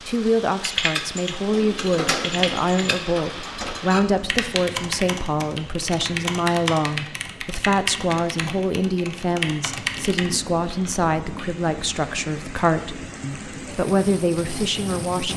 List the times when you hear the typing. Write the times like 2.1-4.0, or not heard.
0.6-11.7.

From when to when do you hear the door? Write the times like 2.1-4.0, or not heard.
1.4-3.8.